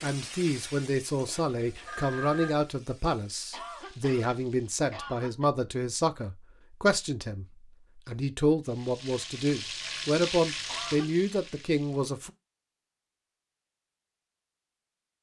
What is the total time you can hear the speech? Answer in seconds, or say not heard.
12 s.